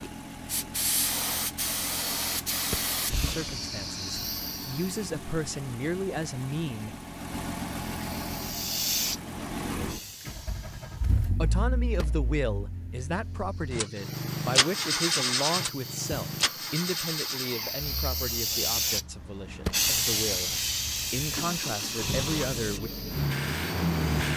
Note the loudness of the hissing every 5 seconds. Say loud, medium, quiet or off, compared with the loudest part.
loud, loud, quiet, loud, loud.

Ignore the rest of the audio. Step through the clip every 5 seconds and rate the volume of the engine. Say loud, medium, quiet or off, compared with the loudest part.
medium, medium, loud, loud, loud.